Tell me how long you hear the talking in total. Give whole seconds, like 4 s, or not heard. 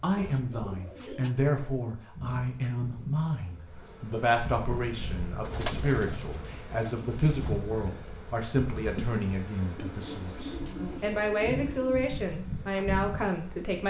14 s.